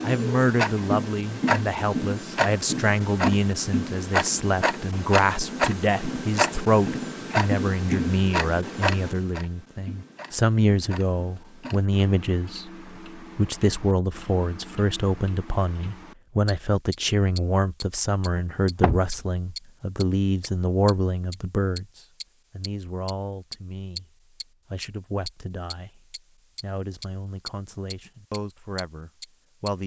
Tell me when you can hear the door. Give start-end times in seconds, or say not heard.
18.4-19.2.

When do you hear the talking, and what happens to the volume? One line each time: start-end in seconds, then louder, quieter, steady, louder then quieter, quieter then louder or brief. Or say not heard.
0.0-29.8 quieter.